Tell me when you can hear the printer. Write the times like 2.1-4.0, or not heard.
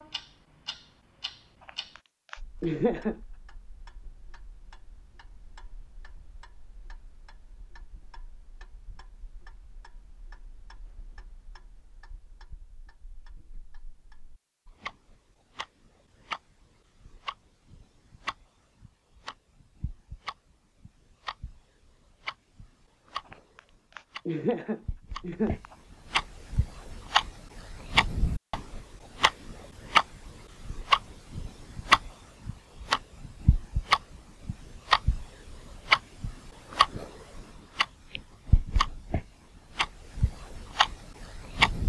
not heard.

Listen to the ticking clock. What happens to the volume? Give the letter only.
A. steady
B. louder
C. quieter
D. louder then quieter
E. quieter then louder
B.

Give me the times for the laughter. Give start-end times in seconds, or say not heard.
1.6-3.2, 23.3-25.8.